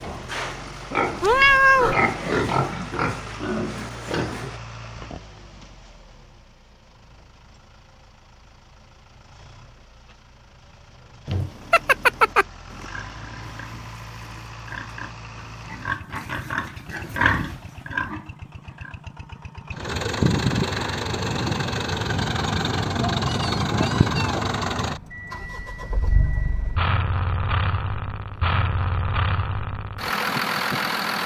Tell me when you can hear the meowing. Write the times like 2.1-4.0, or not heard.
1.2-1.9, 11.2-12.4, 23.2-24.4.